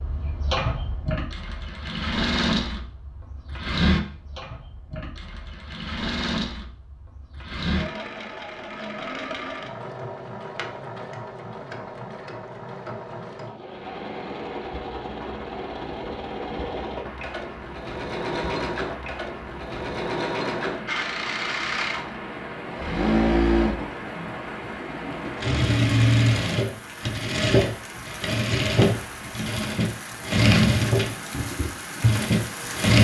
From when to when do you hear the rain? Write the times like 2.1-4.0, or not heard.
13.6-32.9.